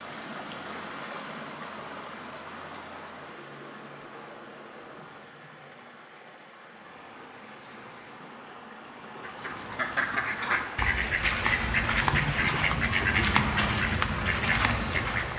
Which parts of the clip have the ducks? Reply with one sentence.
The ducks can be heard from 9.2 to 15.3 s.